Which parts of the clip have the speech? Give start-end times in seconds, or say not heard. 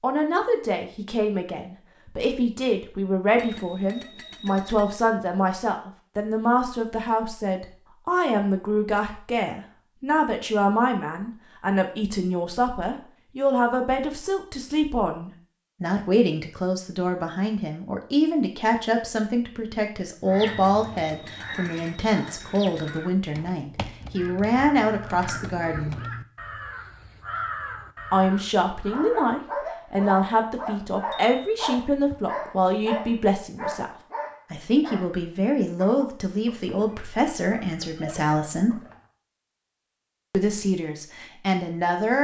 0.0-25.9, 28.1-38.8, 40.3-42.1.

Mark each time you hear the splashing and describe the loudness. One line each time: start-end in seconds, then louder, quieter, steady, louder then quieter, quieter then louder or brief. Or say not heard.
not heard.